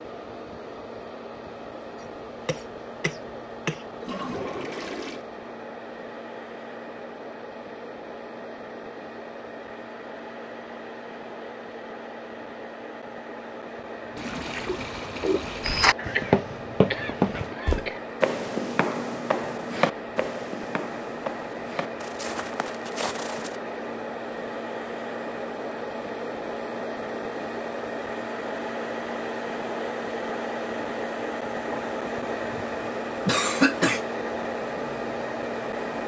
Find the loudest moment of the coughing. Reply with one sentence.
The volume of the coughing peaks at 34 seconds.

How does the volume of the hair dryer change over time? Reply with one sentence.
The loudness of the hair dryer goes up.